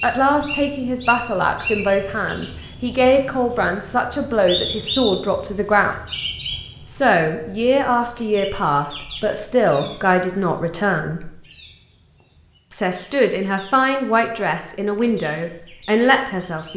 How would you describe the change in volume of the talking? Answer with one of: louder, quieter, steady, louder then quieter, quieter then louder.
steady.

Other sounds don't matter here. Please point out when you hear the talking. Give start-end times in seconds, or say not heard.
0.0-6.0, 6.8-11.3, 12.7-16.7.